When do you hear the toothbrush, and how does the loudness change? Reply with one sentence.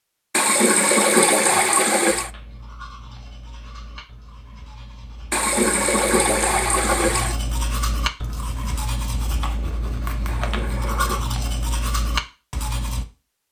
You can hear the toothbrush from 2.0 to 13.1 s, getting louder.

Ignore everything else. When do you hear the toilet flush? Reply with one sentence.
You can hear the toilet flush from 0.3 to 2.3 s, from 5.3 to 7.3 s and from 10.2 to 11.2 s.